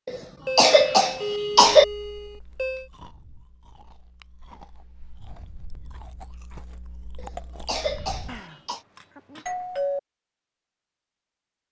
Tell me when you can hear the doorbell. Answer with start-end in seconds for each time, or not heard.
0.5-2.9, 8.2-10.0.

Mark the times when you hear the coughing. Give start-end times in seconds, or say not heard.
0.1-1.9, 7.2-8.8.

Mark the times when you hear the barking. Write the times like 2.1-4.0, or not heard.
not heard.